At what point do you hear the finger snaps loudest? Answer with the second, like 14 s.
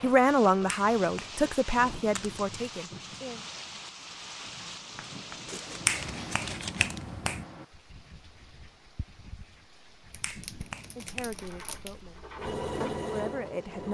6 s.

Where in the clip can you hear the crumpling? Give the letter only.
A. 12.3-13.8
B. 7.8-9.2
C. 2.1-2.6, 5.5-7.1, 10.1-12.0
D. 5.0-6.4
C.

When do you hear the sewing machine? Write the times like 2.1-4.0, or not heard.
12.3-13.8.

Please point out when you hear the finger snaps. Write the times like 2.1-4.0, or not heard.
0.7-1.4, 5.8-7.5, 10.2-11.3.